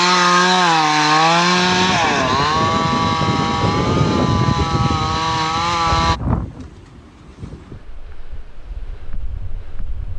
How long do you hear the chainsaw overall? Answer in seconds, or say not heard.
6 s.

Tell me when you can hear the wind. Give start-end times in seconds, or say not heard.
1.4-10.1.